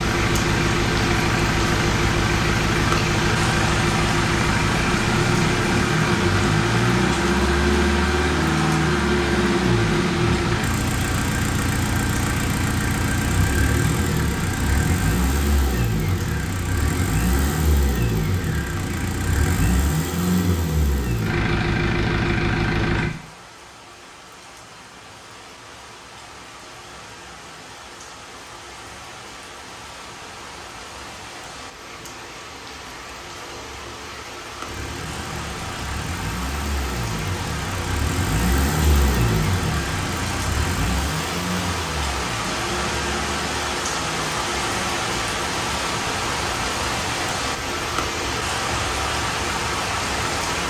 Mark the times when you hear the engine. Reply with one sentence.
You can hear the engine from 0.0 to 23.1 s and from 34.6 to 50.6 s.